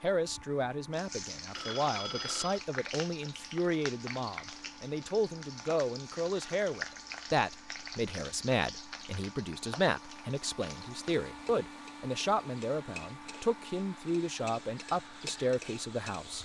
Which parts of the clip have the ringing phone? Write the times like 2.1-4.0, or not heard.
1.6-2.6.